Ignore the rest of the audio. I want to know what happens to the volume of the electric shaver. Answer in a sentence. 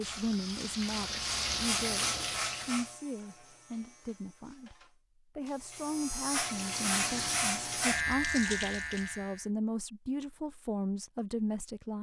The volume of the electric shaver goes down, then up.